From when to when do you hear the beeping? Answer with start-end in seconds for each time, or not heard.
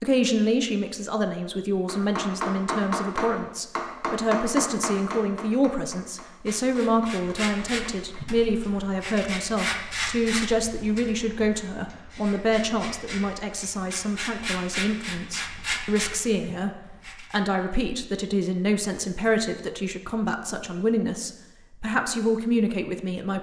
not heard.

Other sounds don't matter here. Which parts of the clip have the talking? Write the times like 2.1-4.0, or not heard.
0.0-16.7, 17.3-23.3.